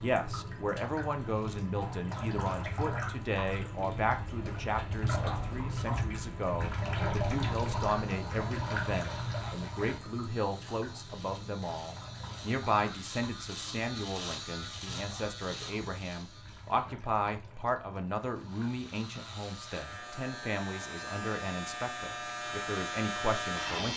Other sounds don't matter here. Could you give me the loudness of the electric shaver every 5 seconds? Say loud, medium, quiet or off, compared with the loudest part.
off, quiet, medium, medium, loud.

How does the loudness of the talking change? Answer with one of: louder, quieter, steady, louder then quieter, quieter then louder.
steady.